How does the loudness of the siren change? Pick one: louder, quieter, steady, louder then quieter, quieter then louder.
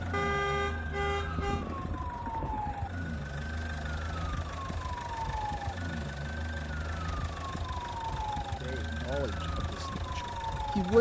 steady.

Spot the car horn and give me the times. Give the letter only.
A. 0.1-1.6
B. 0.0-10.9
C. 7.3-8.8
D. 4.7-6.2
A.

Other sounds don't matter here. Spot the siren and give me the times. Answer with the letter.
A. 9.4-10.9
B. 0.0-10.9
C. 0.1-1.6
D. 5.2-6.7
B.